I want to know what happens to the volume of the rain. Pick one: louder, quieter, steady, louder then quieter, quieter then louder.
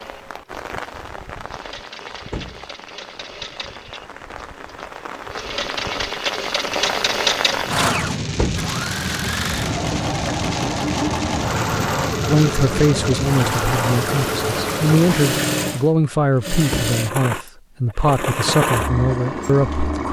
louder.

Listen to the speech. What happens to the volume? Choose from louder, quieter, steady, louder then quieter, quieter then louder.
steady.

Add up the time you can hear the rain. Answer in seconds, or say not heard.
16 s.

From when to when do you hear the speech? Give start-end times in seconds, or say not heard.
12.2-20.0.